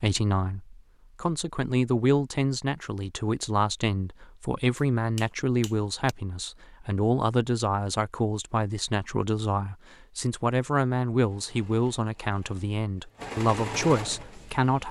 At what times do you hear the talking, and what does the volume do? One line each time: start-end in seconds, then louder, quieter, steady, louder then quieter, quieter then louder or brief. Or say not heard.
0.0-14.8 steady.